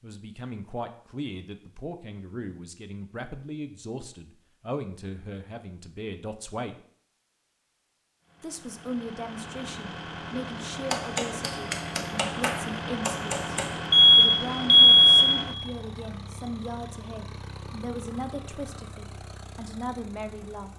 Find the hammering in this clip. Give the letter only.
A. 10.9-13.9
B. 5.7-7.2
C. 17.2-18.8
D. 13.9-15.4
A.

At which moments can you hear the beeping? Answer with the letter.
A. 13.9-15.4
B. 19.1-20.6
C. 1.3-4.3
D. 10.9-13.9
A.